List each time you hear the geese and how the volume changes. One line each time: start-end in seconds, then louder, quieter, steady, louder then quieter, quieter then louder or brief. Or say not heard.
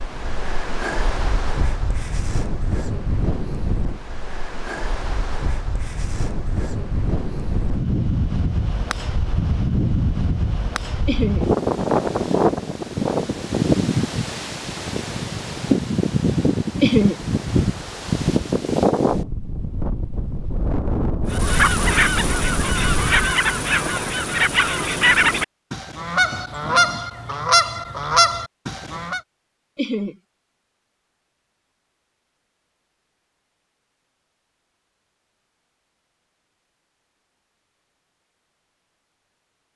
21.3-29.2 steady.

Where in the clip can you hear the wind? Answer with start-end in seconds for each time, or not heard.
0.0-23.4.